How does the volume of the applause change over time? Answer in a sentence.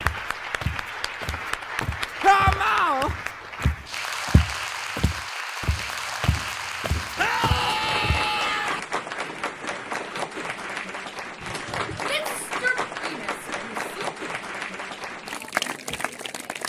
The loudness of the applause stays about the same.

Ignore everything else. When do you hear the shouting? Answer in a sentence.
The shouting can be heard from 2.2 to 3.1 s, from 7.2 to 8.8 s and from 12.0 to 14.1 s.